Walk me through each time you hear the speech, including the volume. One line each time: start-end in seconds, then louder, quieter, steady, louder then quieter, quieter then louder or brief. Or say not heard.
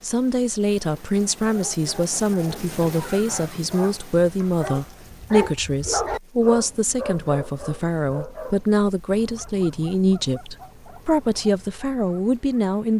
0.0-12.9 steady.